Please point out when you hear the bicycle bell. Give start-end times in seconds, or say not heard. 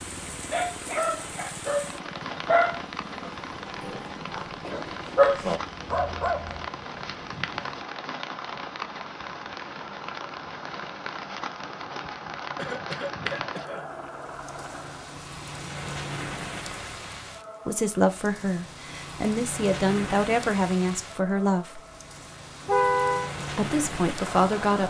not heard.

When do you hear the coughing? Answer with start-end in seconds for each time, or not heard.
12.6-13.9.